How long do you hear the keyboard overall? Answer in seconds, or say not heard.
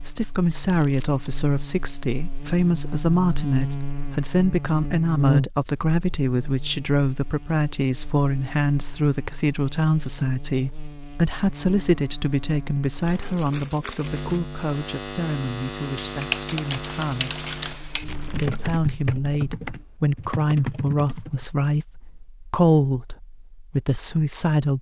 6 s.